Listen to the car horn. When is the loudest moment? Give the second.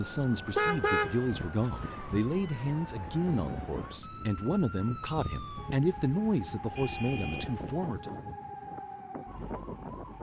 1 s.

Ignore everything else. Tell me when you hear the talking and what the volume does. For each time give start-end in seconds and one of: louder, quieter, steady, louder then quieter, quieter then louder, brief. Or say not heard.
0.0-8.1 steady.